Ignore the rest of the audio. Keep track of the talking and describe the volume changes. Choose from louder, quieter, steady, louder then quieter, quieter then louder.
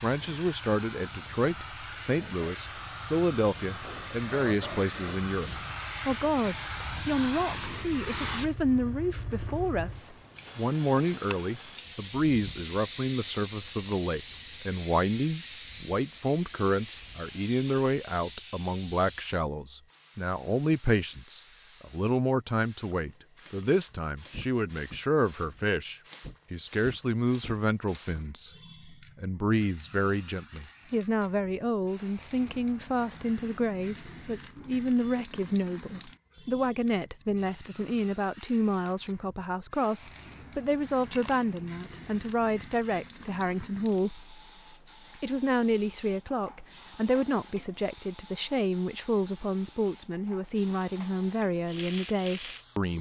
steady.